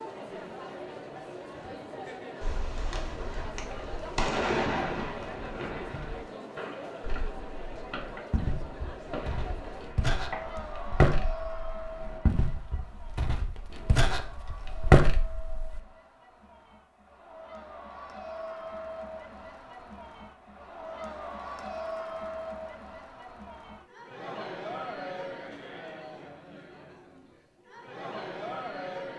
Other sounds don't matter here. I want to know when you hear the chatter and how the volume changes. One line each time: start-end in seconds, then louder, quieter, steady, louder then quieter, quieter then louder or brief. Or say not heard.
0.0-29.1 quieter then louder.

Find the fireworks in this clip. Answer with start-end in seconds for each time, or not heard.
2.4-10.6.